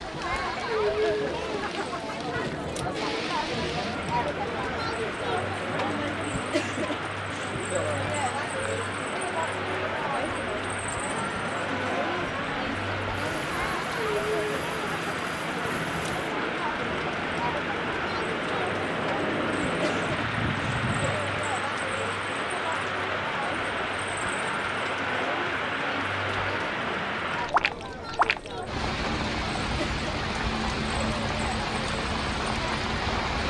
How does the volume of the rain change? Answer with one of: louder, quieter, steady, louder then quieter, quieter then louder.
louder.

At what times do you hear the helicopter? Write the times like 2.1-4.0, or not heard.
11.1-21.2.